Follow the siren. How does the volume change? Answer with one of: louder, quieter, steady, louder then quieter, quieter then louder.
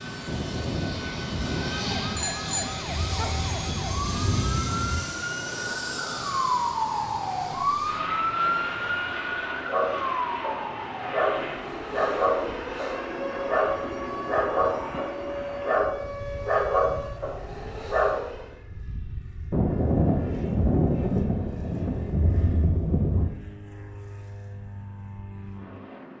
louder then quieter.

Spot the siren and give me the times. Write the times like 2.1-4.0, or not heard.
1.6-18.6.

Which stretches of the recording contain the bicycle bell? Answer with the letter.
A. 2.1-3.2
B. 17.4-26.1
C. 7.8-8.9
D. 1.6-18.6
A.